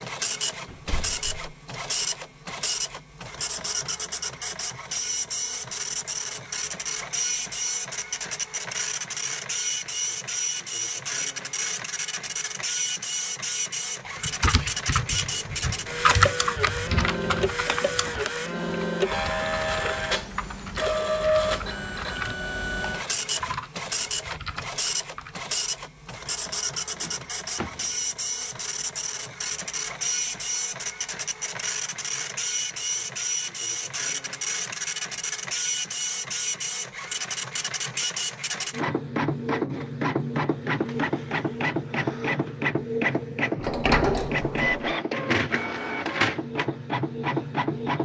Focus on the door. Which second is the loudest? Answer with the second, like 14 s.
44 s.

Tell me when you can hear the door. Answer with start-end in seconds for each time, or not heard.
0.7-1.4, 26.9-27.9, 43.5-45.0.